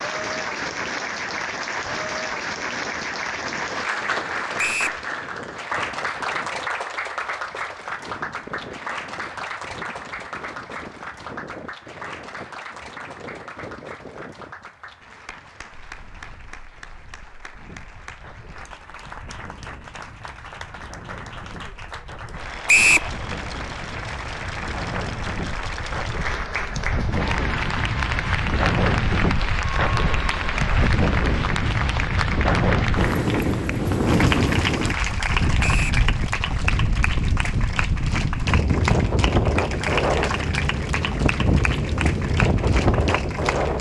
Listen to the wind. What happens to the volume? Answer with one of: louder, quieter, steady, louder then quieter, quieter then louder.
louder.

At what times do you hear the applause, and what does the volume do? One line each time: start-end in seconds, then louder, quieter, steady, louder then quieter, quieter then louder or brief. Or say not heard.
0.0-43.7 quieter then louder.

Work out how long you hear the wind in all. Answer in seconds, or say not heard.
44 s.